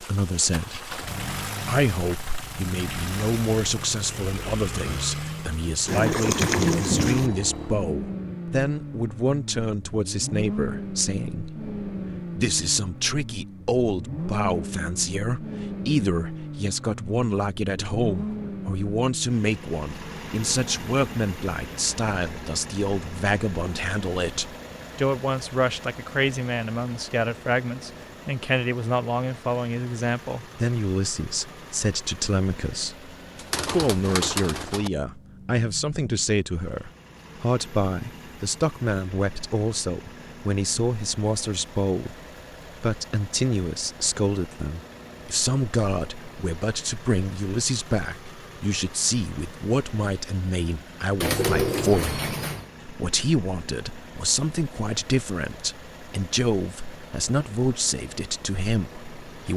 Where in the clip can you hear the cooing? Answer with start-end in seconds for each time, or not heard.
5.8-7.3, 33.4-34.9, 51.2-52.6.